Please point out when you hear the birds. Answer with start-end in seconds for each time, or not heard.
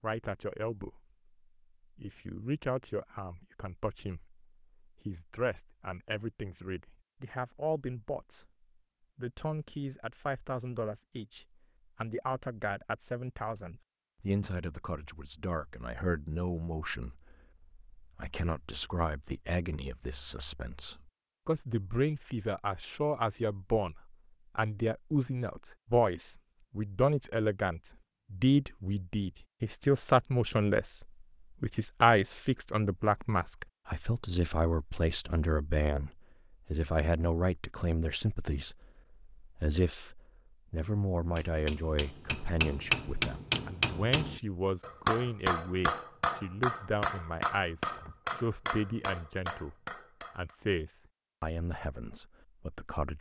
not heard.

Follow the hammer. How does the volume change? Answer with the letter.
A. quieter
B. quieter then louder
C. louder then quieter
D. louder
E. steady
A.